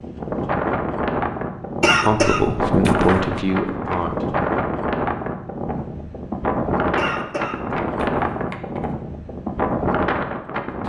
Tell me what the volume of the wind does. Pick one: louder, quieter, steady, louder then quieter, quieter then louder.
steady.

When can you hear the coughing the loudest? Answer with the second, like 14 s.
2 s.